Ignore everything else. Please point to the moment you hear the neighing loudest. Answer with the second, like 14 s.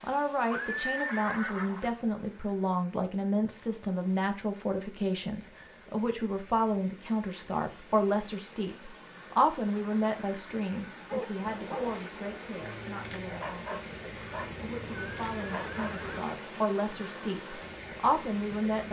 1 s.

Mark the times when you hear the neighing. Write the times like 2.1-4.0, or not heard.
0.5-1.9, 14.3-16.2.